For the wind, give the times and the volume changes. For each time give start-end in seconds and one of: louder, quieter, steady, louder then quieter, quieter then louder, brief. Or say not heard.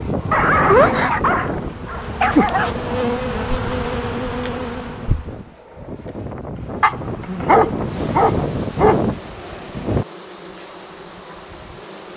0.0-10.1 quieter then louder.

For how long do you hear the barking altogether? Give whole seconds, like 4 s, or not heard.
5 s.